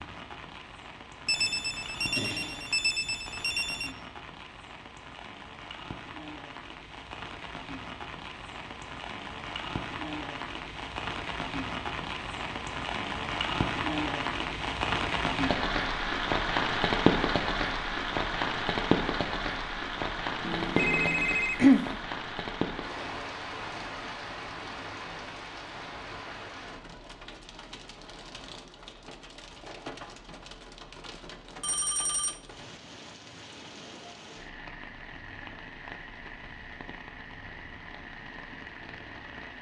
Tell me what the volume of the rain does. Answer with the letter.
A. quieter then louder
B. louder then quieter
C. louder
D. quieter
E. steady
B.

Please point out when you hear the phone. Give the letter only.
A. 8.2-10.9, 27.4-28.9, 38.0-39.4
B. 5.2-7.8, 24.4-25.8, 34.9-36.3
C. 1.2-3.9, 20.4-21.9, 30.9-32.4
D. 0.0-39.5
C.